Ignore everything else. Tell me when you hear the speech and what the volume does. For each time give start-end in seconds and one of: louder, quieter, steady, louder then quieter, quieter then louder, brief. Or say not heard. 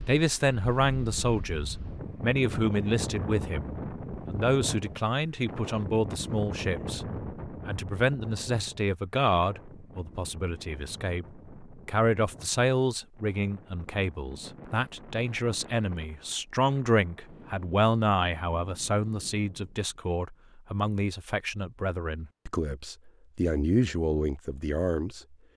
0.0-25.4 steady.